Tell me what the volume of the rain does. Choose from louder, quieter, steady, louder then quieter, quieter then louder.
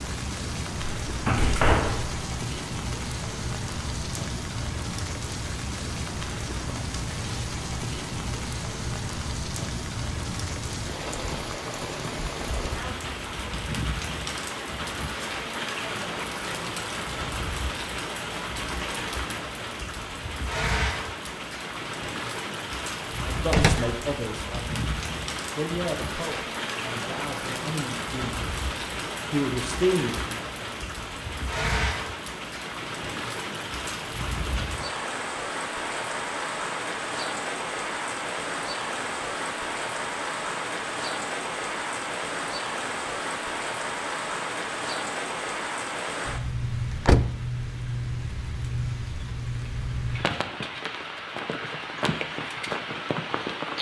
steady.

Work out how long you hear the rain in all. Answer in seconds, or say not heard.
54 s.